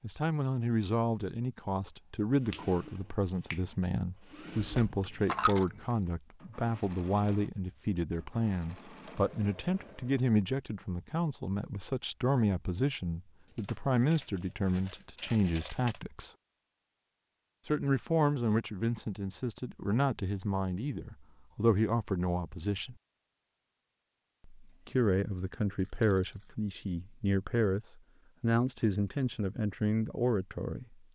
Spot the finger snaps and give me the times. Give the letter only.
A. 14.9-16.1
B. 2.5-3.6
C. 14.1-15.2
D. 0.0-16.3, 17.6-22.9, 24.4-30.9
B.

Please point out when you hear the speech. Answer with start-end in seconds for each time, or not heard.
0.0-16.3, 17.6-22.9, 24.4-30.9.